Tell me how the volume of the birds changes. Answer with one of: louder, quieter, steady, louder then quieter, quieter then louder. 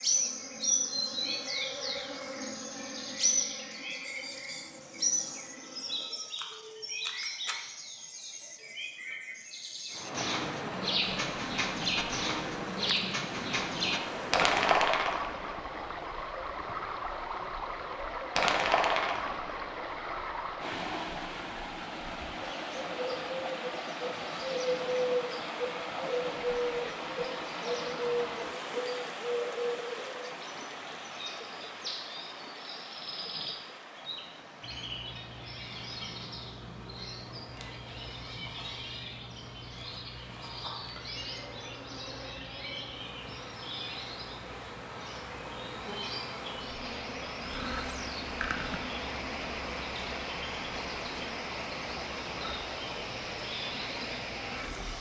quieter.